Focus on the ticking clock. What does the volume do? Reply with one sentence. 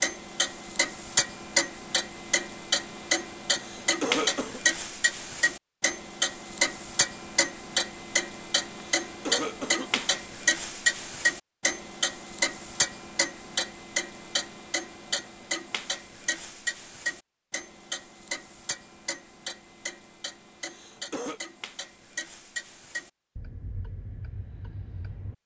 The loudness of the ticking clock goes down.